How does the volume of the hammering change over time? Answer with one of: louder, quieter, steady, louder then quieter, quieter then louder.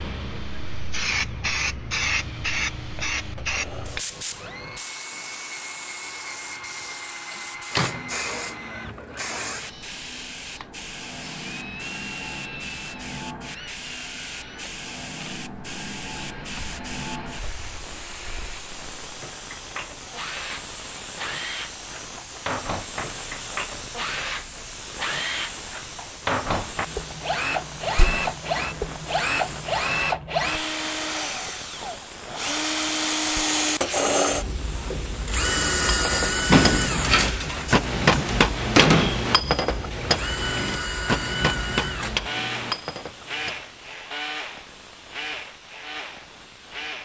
louder then quieter.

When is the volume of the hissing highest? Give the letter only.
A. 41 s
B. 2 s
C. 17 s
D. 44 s
B.